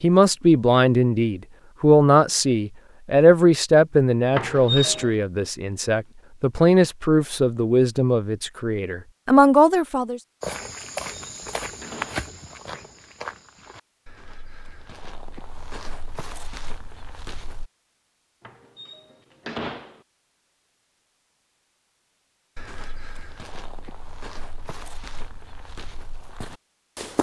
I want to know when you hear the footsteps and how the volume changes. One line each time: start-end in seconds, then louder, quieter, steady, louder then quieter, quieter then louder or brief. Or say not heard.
10.4-17.7 quieter then louder
22.6-27.1 steady.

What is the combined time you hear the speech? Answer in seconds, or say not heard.
10 s.